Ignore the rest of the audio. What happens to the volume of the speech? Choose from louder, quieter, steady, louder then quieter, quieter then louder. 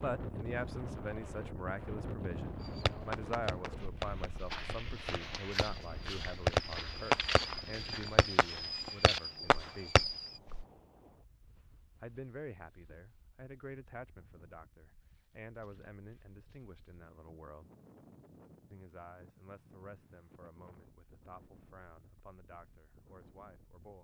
quieter.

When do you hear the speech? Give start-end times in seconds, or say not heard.
0.0-9.9, 12.0-17.7, 18.7-23.9.